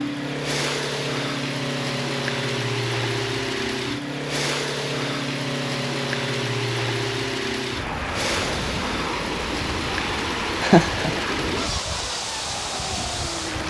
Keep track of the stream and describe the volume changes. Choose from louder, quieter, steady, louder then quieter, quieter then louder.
steady.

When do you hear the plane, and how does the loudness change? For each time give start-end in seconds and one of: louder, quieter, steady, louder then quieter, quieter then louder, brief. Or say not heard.
0.0-13.6 steady.